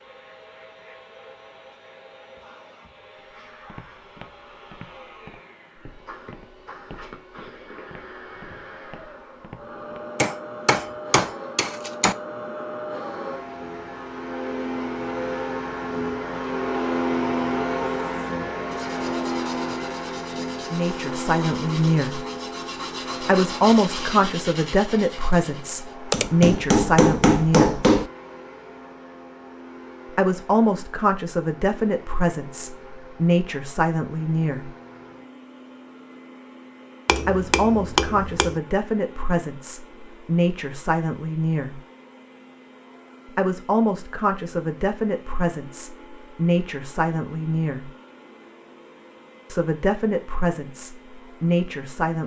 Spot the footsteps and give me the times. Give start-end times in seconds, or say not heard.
3.1-10.1.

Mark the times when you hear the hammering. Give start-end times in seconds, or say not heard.
10.2-12.2, 26.1-28.1, 37.0-38.6.